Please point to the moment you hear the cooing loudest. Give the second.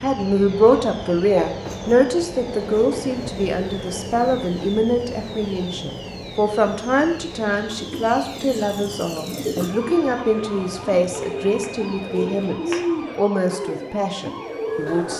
13 s.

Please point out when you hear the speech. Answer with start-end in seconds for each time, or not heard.
0.0-15.1.